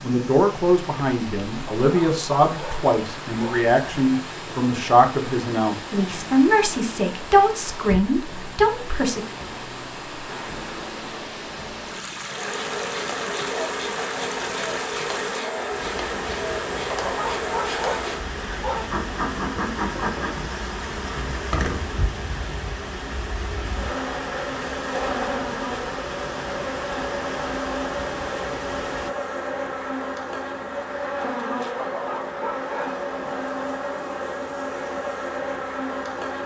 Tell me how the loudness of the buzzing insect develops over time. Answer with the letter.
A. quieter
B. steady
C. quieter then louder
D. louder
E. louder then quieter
B.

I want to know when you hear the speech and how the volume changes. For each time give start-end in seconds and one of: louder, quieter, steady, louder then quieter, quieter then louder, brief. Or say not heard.
0.0-9.2 steady.